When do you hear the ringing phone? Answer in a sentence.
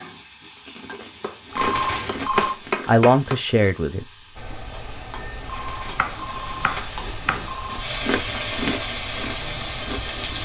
The ringing phone can be heard from 1.5 to 2.5 s and from 5.5 to 7.8 s.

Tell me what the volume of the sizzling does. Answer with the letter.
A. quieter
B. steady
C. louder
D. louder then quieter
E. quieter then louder
C.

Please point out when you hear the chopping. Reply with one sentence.
The chopping can be heard from 0.9 to 3.4 s and from 6.0 to 7.5 s.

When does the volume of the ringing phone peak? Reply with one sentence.
The loudest moment of the ringing phone is at 2 seconds.